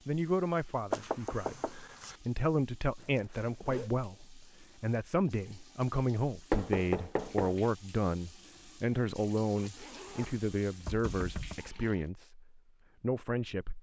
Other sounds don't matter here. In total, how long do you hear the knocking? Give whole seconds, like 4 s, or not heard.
3 s.